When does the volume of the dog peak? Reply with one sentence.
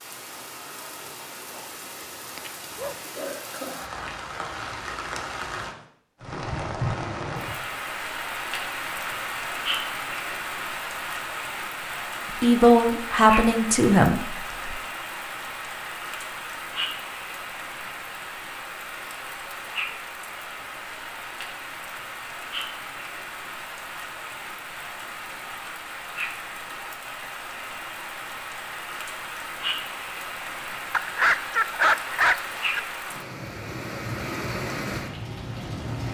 The volume of the dog peaks at 32 seconds.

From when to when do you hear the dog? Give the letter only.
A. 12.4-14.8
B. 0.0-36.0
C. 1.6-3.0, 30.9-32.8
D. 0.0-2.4
C.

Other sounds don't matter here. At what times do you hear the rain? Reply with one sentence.
You can hear the rain from 0.0 to 36.0 s.